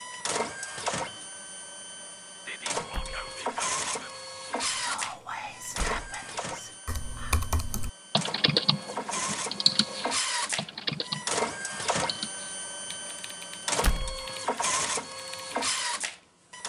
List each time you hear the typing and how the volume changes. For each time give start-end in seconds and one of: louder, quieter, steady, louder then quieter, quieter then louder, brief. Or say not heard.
6.8-15.8 quieter.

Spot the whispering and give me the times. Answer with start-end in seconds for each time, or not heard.
2.5-7.5.